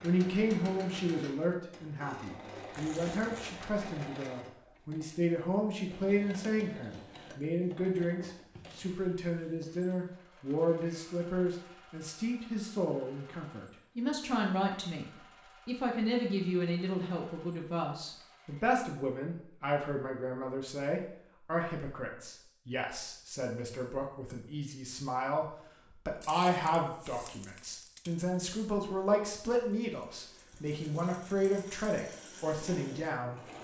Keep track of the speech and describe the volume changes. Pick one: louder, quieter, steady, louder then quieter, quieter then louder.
steady.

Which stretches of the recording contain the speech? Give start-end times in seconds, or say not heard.
0.0-33.4.